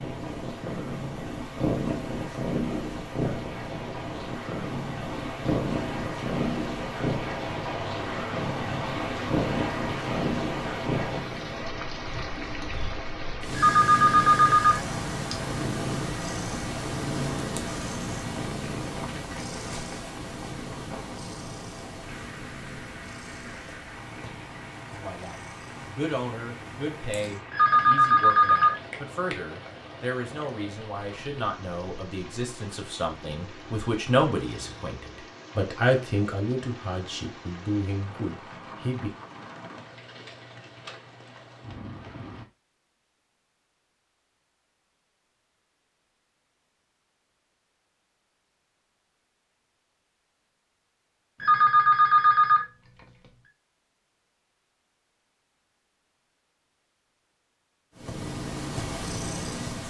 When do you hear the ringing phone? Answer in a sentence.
You can hear the ringing phone from 13.5 to 14.8 s, from 27.5 to 28.8 s and from 51.4 to 52.6 s.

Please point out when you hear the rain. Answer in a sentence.
You can hear the rain from 0.0 to 42.5 s.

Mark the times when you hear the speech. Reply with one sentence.
You can hear the speech from 24.9 to 39.1 s.